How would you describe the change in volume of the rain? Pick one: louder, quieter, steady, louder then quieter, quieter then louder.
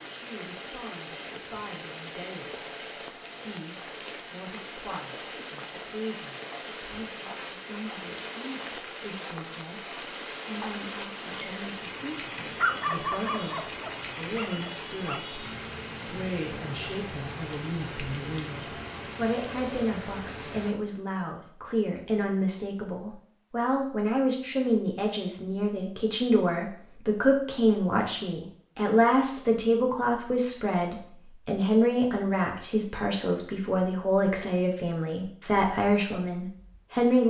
steady.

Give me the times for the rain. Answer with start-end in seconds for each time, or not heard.
0.0-20.8.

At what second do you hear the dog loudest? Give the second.
13 s.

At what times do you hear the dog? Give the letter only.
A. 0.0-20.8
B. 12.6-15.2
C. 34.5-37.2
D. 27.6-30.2
B.